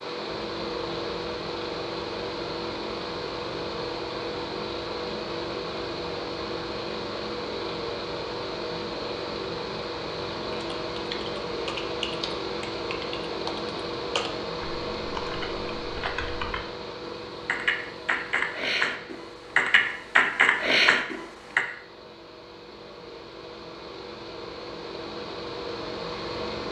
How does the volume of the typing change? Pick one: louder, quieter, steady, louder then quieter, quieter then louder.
louder.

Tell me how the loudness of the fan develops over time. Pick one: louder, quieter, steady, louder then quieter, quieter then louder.
quieter.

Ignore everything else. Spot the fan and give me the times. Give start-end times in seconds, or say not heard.
0.0-26.6.